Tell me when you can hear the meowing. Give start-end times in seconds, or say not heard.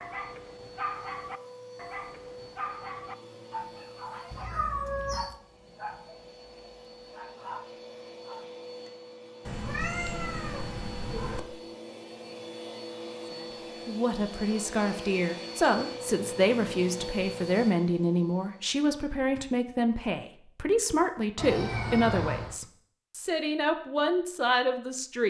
4.3-5.3, 9.4-11.4, 21.4-22.6.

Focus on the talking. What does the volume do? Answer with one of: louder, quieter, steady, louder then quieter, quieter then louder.
steady.